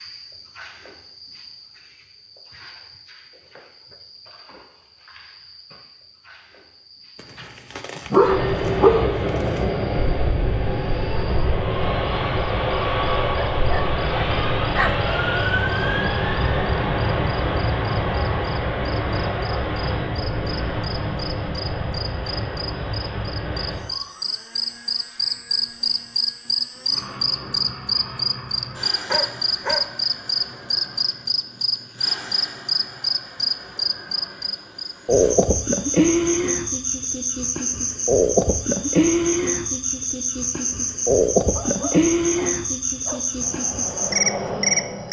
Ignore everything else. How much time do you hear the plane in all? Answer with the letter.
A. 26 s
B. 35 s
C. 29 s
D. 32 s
C.